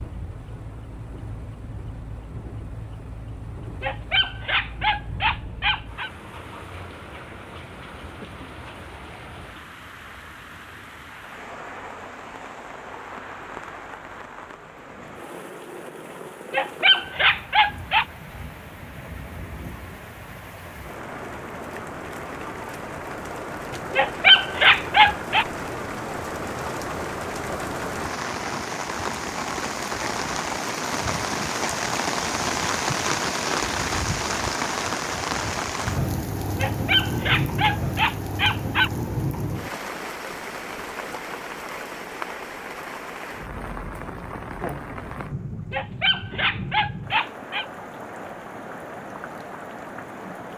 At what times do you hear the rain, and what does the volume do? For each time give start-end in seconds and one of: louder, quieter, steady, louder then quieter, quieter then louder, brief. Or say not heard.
0.0-50.5 louder then quieter.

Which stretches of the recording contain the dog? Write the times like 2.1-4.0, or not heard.
3.8-6.1, 16.5-18.1, 23.9-25.4, 36.5-38.9, 45.7-47.6.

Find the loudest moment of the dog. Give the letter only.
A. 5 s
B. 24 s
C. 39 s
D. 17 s
B.